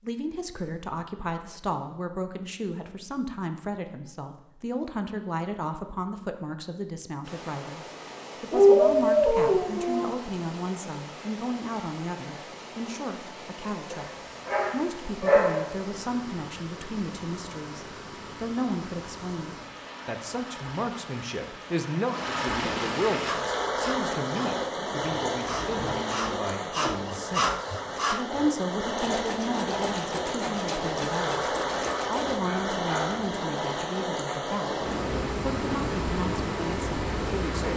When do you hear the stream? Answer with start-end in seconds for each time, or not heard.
7.2-37.7.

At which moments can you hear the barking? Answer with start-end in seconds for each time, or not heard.
8.5-10.1, 13.9-15.6, 31.8-33.2.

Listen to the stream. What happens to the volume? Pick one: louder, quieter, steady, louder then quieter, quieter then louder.
louder.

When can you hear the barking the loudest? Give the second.
9 s.